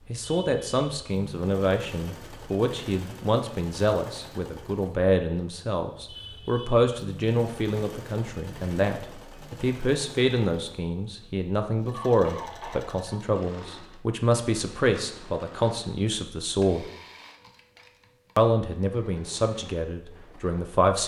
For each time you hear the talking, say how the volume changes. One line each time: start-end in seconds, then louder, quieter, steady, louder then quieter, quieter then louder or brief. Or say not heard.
0.1-16.9 steady
18.4-21.0 brief.